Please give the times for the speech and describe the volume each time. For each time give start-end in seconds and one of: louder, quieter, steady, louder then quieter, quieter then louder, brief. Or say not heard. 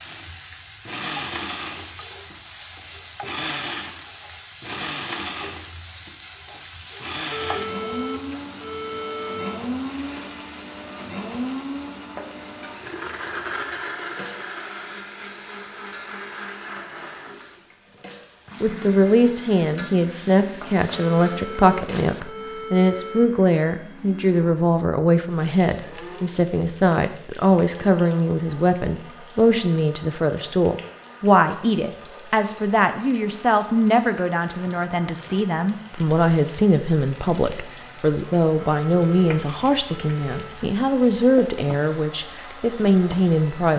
18.6-43.7 steady.